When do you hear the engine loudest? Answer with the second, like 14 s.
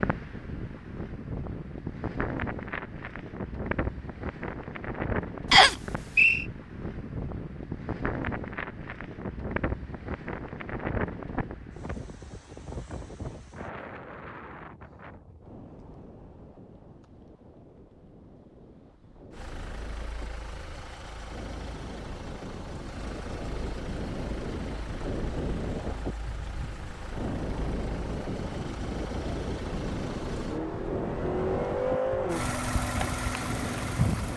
32 s.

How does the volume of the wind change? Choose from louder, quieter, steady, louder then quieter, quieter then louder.
quieter then louder.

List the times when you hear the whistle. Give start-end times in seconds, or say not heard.
5.5-6.5.